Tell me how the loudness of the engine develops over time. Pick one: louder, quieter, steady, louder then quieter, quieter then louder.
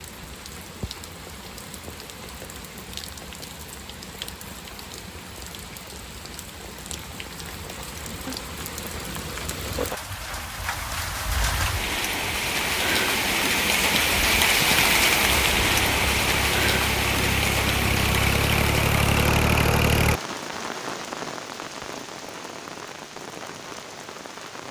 louder.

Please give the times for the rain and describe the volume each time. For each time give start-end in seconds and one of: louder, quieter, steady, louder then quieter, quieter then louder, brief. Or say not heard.
0.0-24.6 louder then quieter.